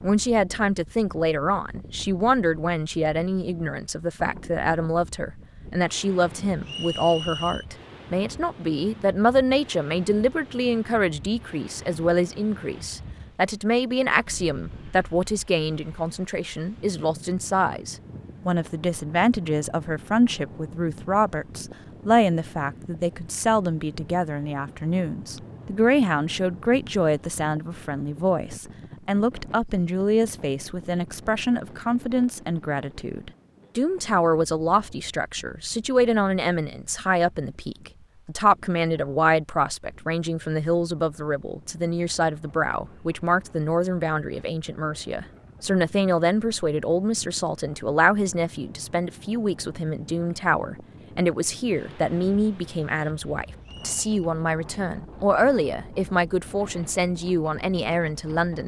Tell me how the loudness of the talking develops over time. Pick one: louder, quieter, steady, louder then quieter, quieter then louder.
steady.